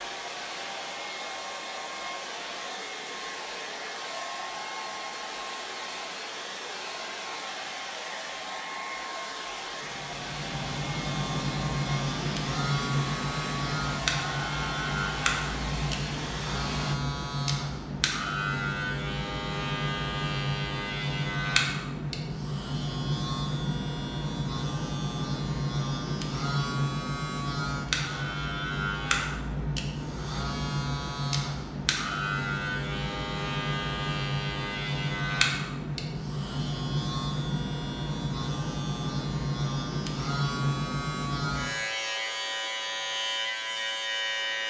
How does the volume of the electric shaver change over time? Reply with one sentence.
The volume of the electric shaver stays about the same.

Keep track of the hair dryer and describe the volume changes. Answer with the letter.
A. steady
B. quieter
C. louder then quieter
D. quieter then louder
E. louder
A.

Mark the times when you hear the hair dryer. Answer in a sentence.
You can hear the hair dryer from 0.0 to 16.9 s.